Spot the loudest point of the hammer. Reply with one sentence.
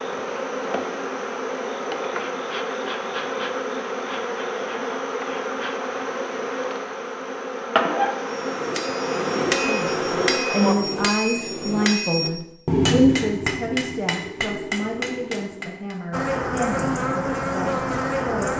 The volume of the hammer peaks at 13 seconds.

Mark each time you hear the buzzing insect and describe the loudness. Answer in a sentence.
The buzzing insect can be heard from 0.0 to 10.8 s, at a steady volume; and briefly from 16.1 to 18.5 s.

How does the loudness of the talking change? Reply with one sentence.
The volume of the talking goes down.